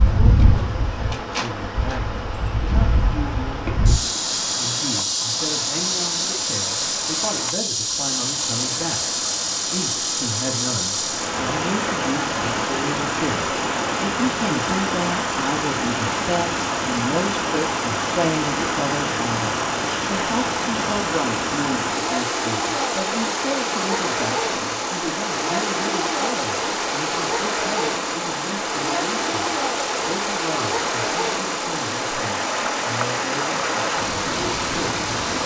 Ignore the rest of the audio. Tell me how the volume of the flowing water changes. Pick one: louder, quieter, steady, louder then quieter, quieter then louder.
louder.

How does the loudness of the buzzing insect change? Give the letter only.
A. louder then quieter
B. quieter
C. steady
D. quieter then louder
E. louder
B.